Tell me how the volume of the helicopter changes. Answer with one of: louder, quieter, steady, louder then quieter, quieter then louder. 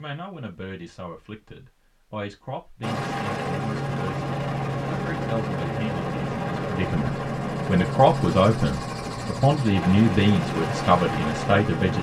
steady.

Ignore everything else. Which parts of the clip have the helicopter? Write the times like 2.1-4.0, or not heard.
2.8-11.9.